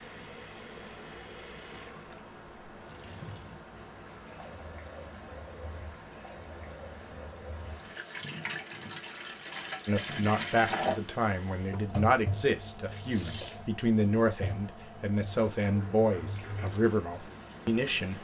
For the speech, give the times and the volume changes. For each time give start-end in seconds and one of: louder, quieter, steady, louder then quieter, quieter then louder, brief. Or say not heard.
9.8-18.1 steady.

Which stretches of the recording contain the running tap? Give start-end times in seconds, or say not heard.
0.0-18.1.